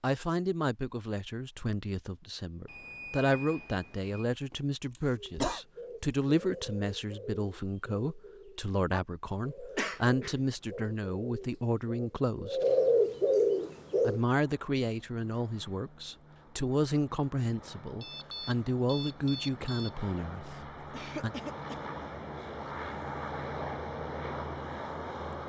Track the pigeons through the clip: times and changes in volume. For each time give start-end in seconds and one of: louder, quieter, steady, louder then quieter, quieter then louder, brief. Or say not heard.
5.4-14.2 louder.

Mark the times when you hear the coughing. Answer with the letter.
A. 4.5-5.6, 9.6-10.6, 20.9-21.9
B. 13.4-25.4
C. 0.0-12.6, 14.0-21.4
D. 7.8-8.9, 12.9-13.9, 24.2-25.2
A.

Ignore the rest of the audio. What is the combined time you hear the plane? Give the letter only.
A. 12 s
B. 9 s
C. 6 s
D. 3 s
A.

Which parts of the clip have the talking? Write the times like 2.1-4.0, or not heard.
0.0-12.6, 14.0-21.4.